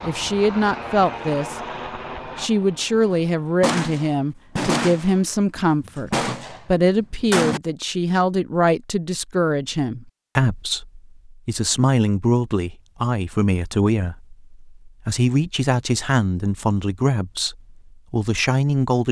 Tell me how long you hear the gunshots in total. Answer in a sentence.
You can hear the gunshots for 3 seconds altogether.